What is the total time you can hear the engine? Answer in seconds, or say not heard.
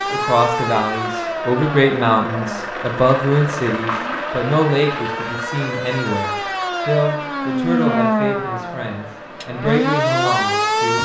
11 s.